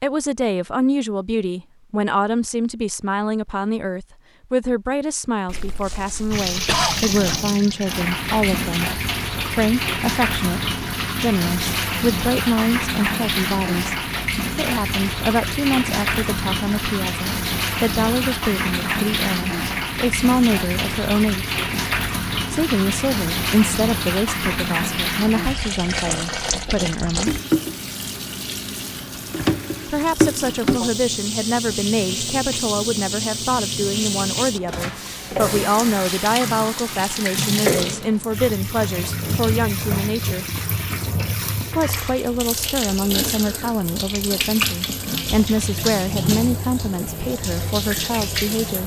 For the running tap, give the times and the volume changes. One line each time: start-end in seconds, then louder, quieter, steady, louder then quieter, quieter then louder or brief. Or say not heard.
6.3-48.8 steady.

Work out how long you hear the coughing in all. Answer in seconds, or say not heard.
2 s.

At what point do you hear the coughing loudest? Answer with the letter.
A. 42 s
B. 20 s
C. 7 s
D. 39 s
C.